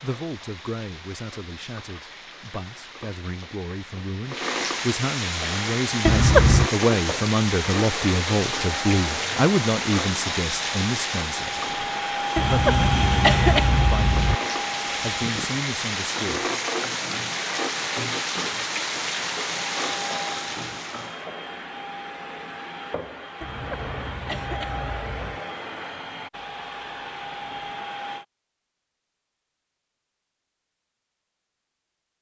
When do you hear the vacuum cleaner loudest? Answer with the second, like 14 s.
13 s.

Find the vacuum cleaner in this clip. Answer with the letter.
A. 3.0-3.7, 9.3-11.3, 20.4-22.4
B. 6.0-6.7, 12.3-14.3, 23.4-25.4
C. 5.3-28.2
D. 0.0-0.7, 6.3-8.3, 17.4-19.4
C.